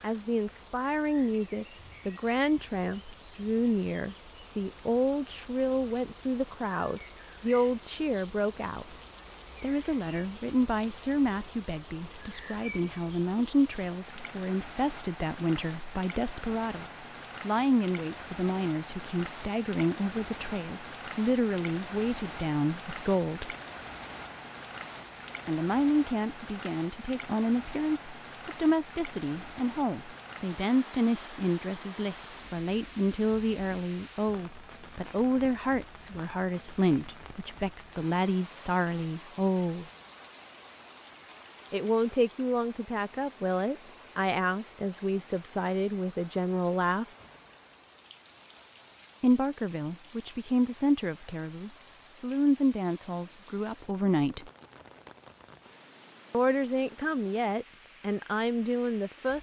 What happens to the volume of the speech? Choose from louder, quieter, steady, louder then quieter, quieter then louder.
steady.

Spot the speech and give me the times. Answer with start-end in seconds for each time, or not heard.
0.0-8.8, 9.6-23.6, 25.4-39.9, 41.7-47.0, 49.2-54.5, 56.3-59.3.